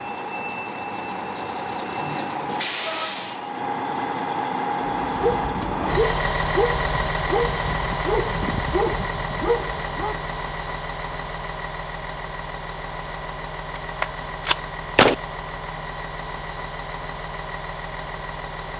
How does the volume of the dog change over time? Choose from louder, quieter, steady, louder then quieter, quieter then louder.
steady.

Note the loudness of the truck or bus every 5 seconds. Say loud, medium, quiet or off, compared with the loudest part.
loud, loud, medium, medium.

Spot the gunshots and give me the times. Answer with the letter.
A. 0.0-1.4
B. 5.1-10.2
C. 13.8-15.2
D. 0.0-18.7
C.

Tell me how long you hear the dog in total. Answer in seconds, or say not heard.
5 s.